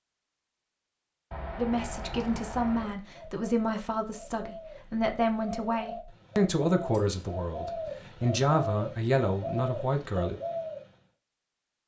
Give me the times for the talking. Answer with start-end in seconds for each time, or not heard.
1.6-10.3.